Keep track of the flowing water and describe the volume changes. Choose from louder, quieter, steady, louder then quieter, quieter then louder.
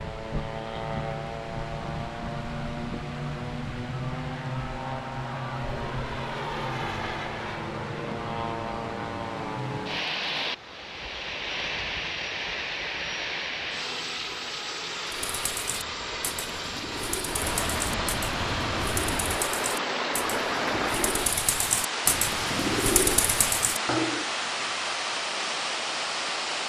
louder.